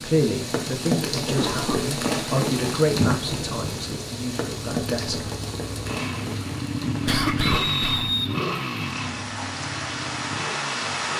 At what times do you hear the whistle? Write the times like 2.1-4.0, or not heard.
7.4-8.3.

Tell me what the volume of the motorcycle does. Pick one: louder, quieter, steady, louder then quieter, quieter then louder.
louder then quieter.